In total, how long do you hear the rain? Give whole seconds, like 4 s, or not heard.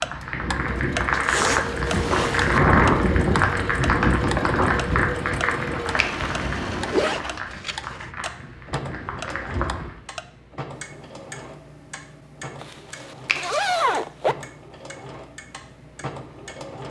10 s.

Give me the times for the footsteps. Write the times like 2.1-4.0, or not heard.
not heard.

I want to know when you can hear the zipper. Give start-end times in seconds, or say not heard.
1.1-2.6, 6.9-8.1, 12.6-14.3.